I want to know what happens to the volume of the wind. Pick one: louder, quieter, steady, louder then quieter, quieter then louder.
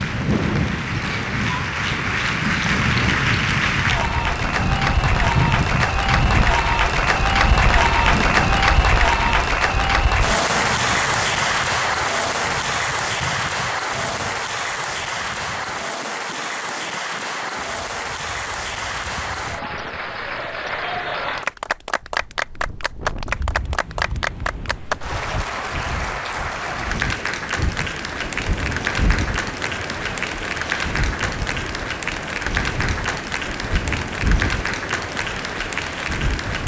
quieter then louder.